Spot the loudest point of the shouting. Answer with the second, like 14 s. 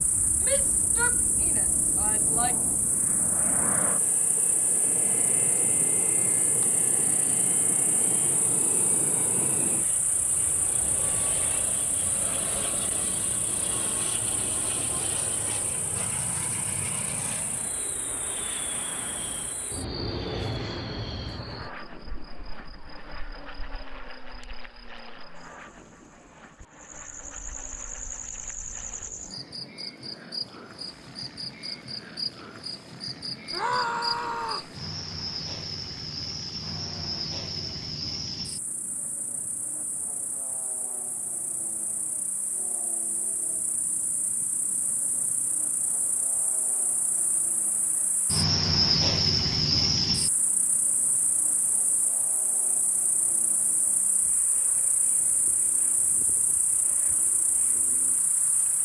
34 s.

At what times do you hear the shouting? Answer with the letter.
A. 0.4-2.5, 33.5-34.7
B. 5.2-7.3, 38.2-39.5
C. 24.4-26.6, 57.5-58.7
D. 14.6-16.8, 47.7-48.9
A.